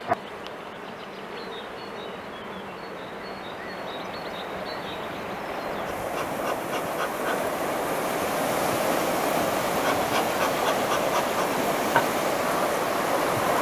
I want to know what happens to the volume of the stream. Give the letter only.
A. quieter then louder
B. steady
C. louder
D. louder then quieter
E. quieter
C.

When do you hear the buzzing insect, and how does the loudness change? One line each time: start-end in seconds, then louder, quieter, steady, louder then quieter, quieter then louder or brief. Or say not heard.
0.0-13.5 louder.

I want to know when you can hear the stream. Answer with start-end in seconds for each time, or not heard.
0.2-13.5.